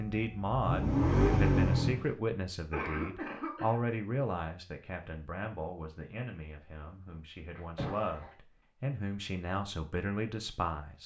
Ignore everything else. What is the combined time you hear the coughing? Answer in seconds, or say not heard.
2 s.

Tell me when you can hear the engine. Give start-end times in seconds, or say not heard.
0.0-2.1.